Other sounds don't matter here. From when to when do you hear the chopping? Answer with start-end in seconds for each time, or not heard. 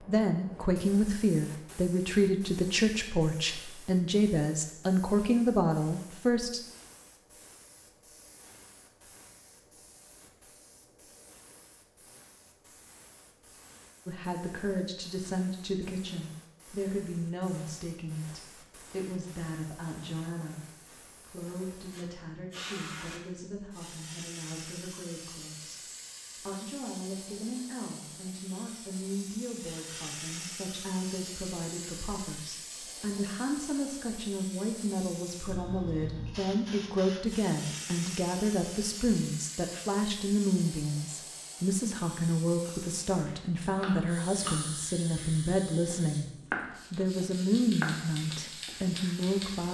42.6-48.8.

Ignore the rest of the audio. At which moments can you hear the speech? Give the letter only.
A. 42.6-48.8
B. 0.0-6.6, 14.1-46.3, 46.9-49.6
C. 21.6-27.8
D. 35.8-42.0
B.